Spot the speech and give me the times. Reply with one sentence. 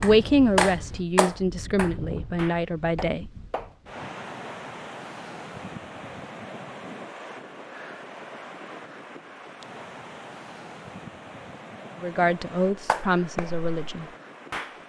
You can hear the speech from 0.0 to 3.3 s and from 12.0 to 14.1 s.